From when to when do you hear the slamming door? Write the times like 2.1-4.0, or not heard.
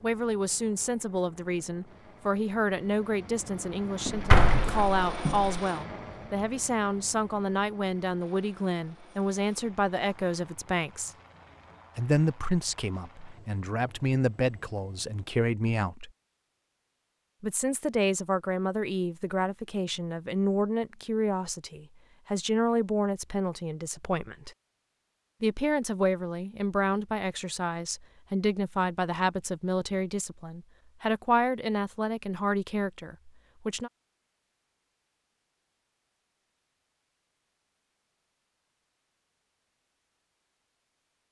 4.0-5.6.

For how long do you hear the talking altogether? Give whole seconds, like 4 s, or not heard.
31 s.